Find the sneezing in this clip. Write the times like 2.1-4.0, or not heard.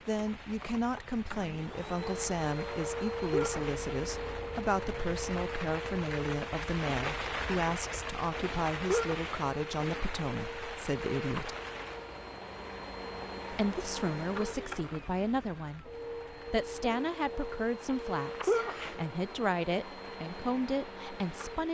3.3-3.9, 8.8-9.4, 18.4-19.0.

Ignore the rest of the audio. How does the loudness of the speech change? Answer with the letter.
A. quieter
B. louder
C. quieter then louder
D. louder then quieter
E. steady
E.